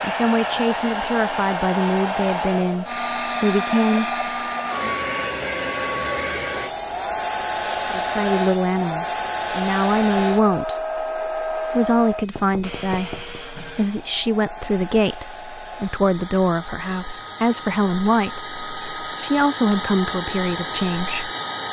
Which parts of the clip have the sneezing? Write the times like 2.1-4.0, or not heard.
not heard.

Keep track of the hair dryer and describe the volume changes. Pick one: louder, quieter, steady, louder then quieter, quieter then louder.
quieter then louder.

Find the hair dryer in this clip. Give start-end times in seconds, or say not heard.
0.0-21.6.